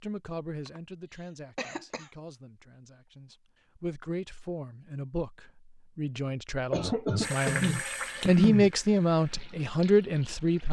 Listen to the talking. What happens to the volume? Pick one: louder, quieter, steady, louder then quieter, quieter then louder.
louder.